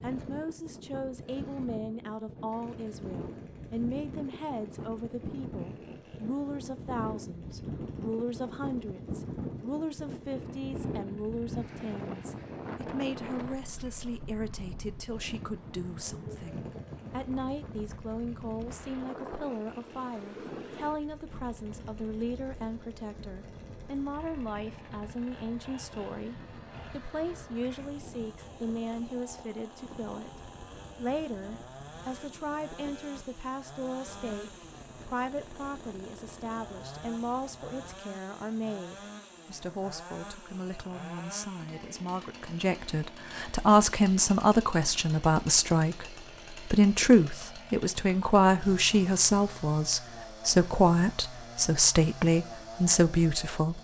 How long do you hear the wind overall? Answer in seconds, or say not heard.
38 s.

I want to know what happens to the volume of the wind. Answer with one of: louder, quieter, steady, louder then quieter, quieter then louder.
quieter.